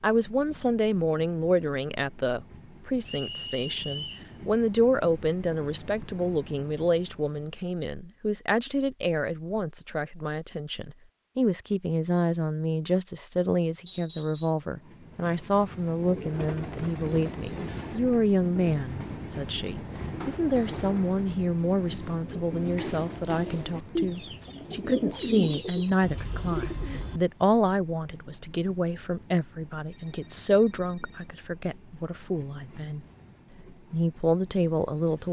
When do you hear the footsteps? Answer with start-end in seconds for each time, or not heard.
not heard.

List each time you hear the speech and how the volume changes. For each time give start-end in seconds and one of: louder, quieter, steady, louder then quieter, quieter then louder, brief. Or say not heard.
0.0-33.0 steady
33.9-35.2 brief.